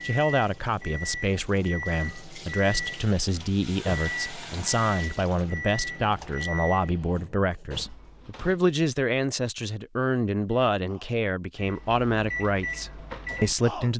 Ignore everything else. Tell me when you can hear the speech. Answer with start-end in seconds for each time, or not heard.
0.0-13.9.